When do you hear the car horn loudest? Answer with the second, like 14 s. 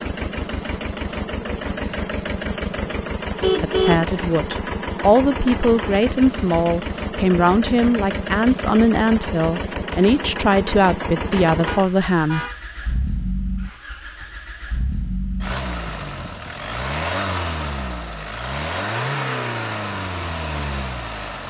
4 s.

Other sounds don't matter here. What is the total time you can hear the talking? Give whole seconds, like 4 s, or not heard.
9 s.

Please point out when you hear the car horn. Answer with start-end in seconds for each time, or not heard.
2.9-4.0, 11.7-13.1.